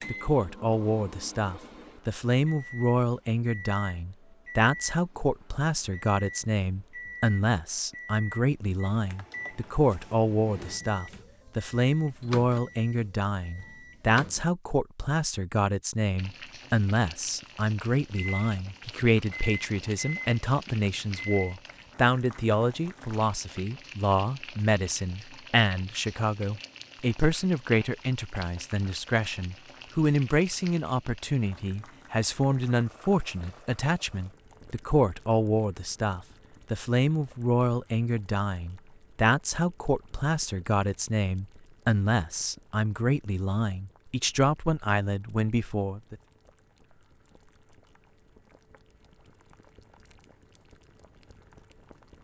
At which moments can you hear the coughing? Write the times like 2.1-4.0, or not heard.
not heard.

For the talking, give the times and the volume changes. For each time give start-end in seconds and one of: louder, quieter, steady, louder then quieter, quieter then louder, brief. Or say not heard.
0.1-46.1 steady.